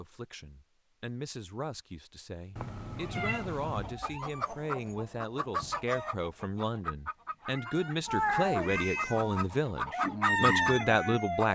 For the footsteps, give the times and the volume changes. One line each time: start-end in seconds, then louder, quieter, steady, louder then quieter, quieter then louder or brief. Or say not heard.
not heard.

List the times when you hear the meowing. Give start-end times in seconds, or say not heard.
2.5-4.0, 8.1-9.5.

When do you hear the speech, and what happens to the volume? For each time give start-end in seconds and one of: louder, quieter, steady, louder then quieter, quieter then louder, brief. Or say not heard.
0.0-11.5 louder.